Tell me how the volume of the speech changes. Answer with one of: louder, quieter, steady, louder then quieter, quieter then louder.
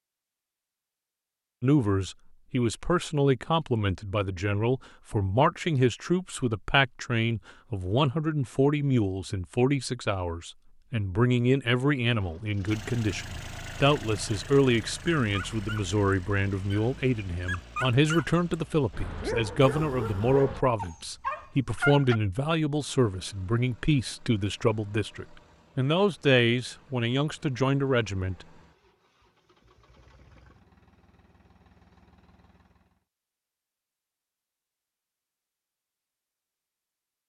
steady.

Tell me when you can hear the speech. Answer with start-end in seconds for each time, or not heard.
1.6-28.4.